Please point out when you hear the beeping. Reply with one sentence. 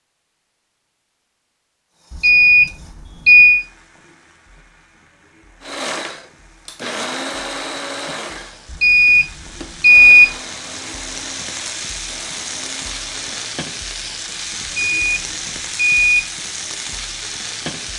You can hear the beeping from 2.1 to 3.6 s, from 8.7 to 10.3 s and from 14.8 to 16.2 s.